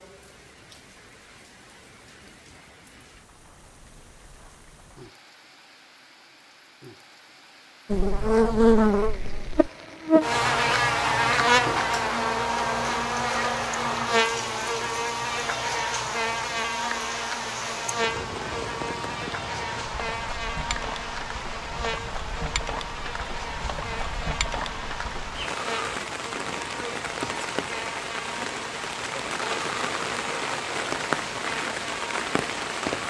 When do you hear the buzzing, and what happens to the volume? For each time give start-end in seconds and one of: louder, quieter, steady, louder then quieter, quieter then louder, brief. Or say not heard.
7.9-32.9 quieter.